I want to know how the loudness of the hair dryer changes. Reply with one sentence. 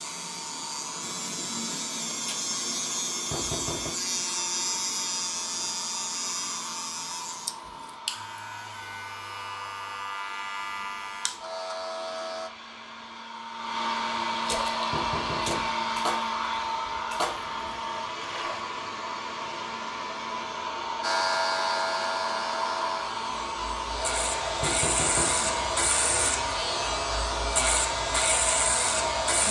The volume of the hair dryer goes up.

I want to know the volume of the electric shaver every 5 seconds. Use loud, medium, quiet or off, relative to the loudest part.
loud, medium, medium, off, loud, loud.